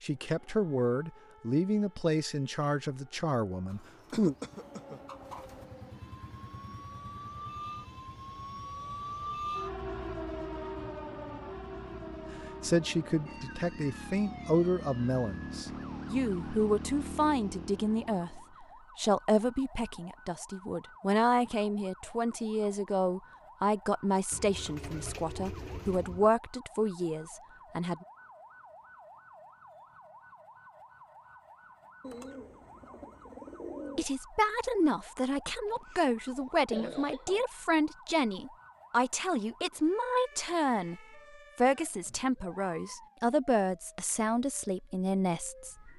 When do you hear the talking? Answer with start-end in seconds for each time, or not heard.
0.0-4.3, 12.6-28.1, 34.0-45.9.